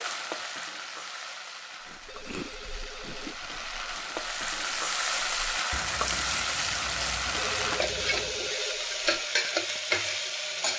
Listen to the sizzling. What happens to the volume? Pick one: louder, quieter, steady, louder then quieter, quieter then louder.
louder.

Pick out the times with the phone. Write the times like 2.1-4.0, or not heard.
2.0-3.4, 7.3-9.0.